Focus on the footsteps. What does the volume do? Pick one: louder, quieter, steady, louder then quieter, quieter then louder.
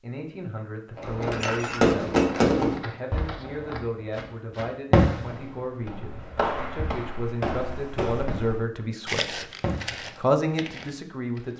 louder then quieter.